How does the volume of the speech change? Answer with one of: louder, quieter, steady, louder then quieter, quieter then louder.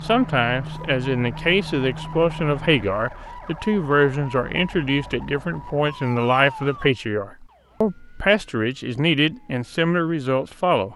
steady.